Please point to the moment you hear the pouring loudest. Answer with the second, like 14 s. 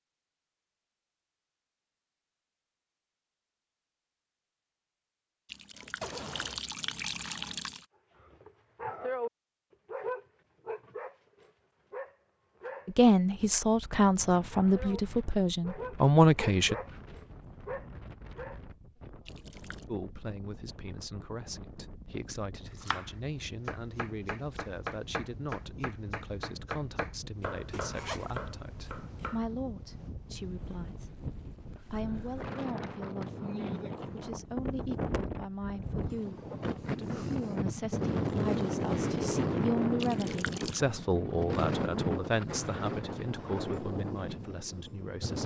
7 s.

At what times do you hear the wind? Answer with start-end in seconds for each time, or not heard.
13.3-45.4.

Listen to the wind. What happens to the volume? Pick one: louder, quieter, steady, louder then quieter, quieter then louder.
louder.